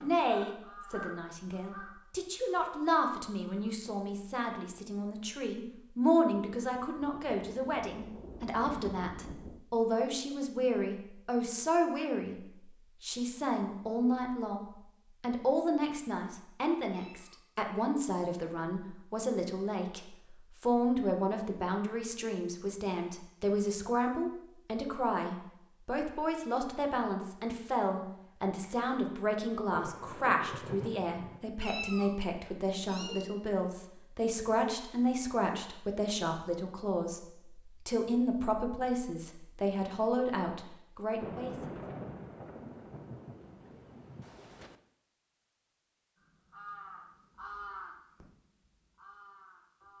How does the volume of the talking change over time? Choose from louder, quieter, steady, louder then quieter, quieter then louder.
steady.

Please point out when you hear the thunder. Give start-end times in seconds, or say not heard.
7.0-9.7, 29.7-31.4, 41.2-44.8.